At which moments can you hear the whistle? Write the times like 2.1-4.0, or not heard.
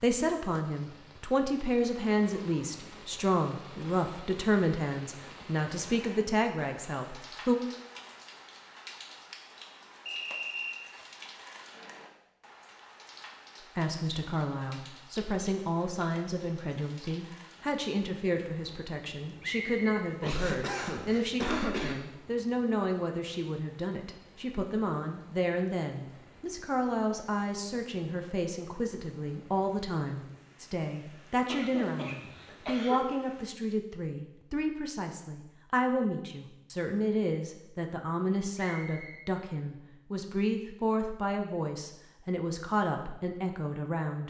10.1-10.9, 19.4-20.0, 38.5-39.2.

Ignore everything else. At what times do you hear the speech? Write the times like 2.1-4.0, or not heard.
0.0-7.6, 13.8-44.2.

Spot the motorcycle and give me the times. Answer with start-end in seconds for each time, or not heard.
not heard.